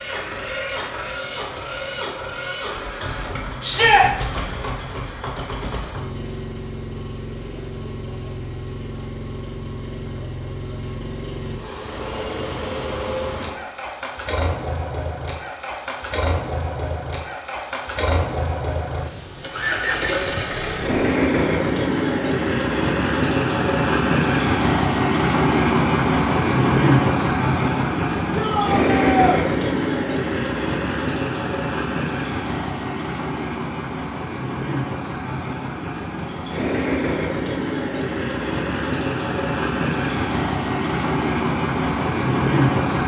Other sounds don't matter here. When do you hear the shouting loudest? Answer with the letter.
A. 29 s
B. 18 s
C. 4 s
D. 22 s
C.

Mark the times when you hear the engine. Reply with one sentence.
You can hear the engine from 0.0 to 43.0 s.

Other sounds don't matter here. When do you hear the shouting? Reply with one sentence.
The shouting can be heard from 3.6 to 4.0 s and from 28.3 to 29.4 s.